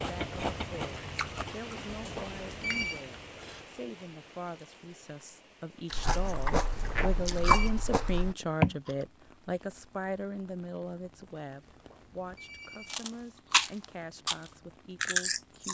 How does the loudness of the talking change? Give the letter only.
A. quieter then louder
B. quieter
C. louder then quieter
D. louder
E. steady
C.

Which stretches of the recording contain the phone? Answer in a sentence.
You can hear the phone from 1.9 to 3.0 s, from 6.7 to 7.7 s and from 11.6 to 12.9 s.